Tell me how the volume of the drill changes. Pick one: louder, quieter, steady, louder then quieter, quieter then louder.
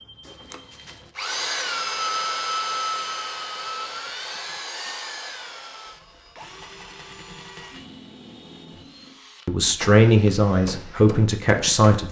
quieter.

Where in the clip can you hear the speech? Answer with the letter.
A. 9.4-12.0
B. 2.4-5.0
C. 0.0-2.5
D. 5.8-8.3
A.